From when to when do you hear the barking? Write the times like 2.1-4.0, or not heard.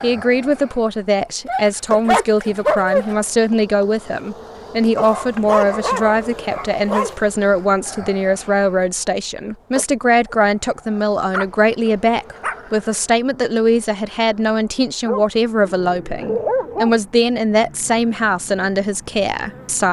1.4-3.0, 5.0-7.2, 11.3-12.8, 15.1-16.9.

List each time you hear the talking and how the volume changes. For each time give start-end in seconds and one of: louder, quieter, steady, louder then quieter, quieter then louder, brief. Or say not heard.
0.0-19.8 steady.